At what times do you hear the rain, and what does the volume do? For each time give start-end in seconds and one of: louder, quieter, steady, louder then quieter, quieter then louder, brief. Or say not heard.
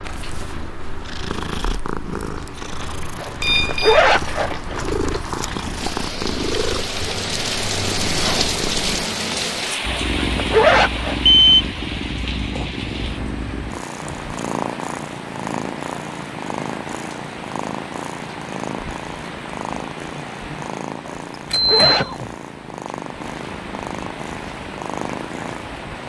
0.0-26.0 louder then quieter.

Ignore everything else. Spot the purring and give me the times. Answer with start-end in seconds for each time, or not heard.
0.0-26.0.